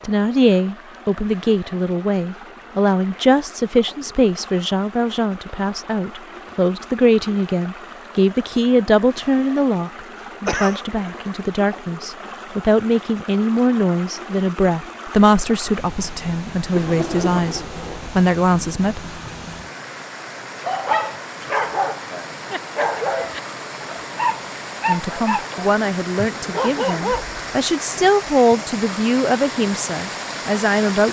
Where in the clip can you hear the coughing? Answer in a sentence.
You can hear the coughing from 10.4 to 10.8 s and from 16.7 to 17.6 s.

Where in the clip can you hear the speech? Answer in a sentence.
You can hear the speech from 0.0 to 19.0 s and from 24.9 to 31.0 s.